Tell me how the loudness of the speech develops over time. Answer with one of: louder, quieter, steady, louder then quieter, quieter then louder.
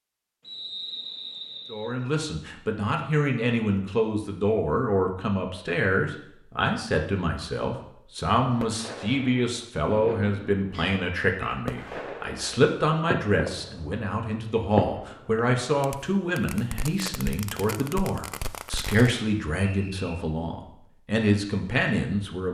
steady.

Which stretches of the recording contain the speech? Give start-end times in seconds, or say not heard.
1.7-22.4.